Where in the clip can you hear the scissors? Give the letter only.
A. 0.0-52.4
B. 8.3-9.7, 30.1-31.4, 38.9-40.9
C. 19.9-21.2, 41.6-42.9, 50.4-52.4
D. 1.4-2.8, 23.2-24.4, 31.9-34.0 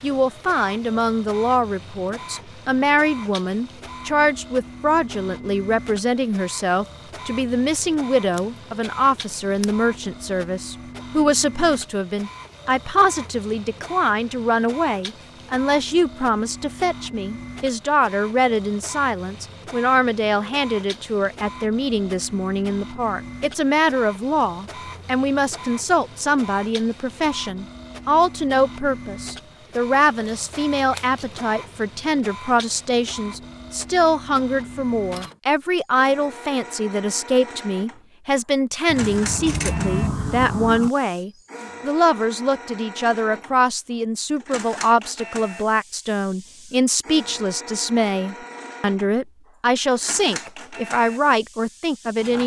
B.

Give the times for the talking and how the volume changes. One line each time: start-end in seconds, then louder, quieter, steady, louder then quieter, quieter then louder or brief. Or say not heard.
0.0-52.4 steady.